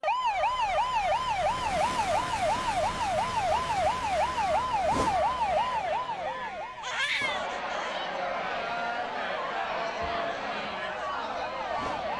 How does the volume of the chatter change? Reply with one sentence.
The loudness of the chatter goes up.